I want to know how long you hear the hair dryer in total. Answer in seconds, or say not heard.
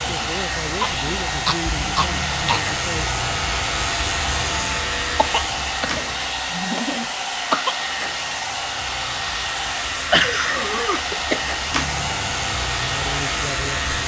14 s.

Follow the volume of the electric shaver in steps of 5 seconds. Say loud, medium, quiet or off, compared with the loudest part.
loud, medium, loud.